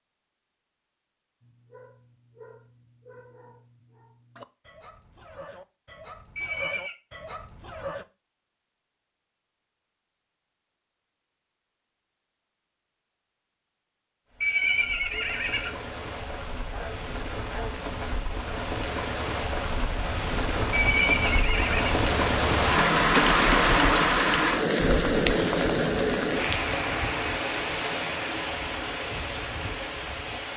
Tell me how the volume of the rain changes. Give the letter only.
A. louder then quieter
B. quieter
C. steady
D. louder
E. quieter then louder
A.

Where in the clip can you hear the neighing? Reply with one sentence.
You can hear the neighing from 6.3 to 7.0 s, from 14.4 to 15.8 s and from 20.7 to 21.9 s.